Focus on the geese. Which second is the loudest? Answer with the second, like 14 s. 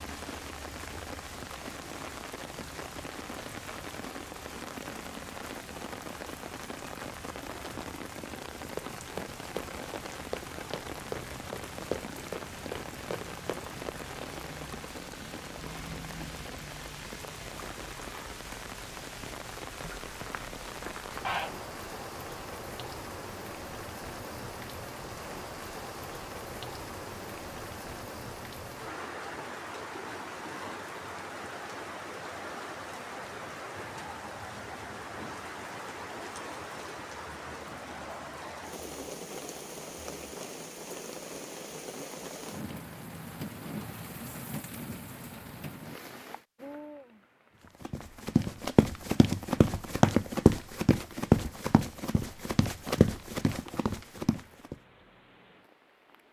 21 s.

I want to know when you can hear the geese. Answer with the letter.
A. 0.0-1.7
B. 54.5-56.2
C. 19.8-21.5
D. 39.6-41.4
C.